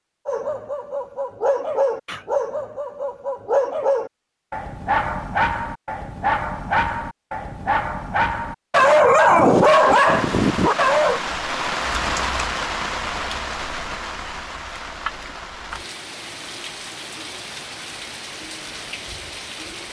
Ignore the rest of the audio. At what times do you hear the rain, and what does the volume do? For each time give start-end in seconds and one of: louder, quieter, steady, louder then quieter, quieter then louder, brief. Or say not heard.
9.6-19.8 quieter.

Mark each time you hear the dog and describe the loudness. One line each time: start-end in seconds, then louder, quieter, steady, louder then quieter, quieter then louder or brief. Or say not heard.
0.2-11.2 louder.